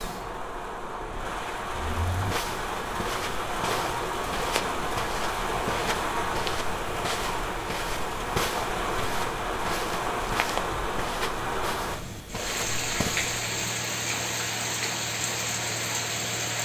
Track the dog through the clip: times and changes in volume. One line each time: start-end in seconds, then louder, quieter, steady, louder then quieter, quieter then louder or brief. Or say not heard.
not heard.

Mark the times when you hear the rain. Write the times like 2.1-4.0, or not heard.
0.0-16.6.